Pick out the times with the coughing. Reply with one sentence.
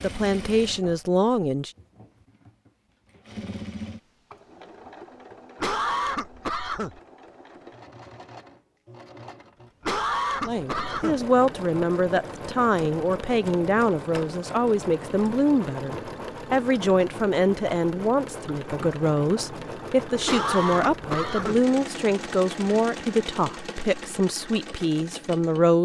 The coughing can be heard from 5.6 to 7.0 s, from 9.8 to 11.2 s and from 20.2 to 21.6 s.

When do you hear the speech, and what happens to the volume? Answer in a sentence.
The speech can be heard briefly from 0.0 to 1.7 s; and from 10.4 to 25.8 s, at a steady volume.